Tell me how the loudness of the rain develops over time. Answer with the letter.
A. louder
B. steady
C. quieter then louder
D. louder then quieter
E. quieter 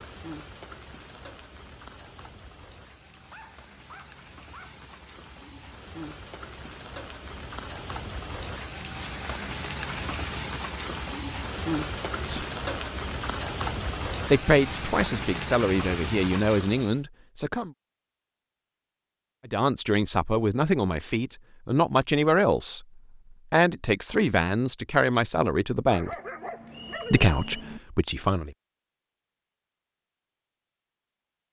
A.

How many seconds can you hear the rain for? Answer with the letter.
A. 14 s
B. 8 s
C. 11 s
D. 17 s
D.